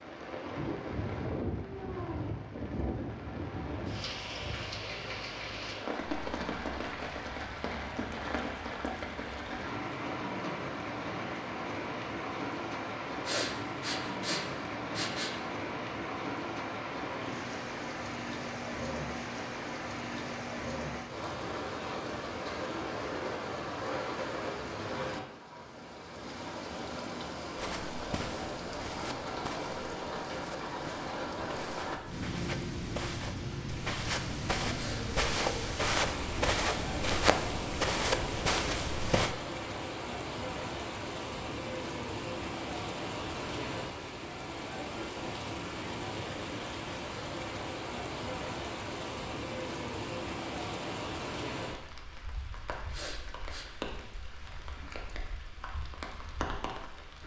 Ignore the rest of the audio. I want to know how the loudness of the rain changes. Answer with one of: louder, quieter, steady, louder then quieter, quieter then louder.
steady.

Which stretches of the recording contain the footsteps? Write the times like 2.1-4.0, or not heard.
27.6-39.4.